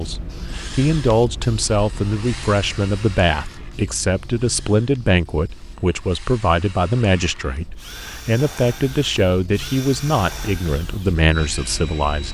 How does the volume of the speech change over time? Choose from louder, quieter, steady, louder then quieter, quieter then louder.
steady.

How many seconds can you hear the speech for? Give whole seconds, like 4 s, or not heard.
12 s.